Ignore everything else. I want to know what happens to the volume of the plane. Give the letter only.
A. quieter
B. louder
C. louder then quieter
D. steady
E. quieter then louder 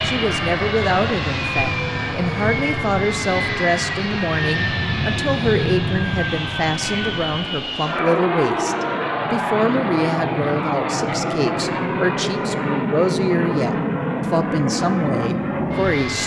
D.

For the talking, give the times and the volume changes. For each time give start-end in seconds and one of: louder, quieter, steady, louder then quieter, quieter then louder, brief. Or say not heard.
0.0-16.2 steady.